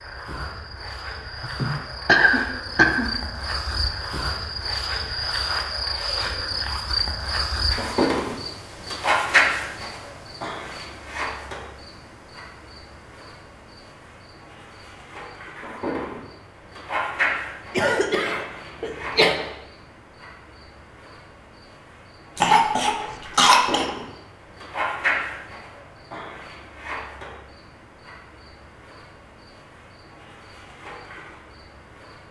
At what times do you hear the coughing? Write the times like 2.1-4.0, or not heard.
1.4-3.1, 17.8-19.4, 22.4-23.9.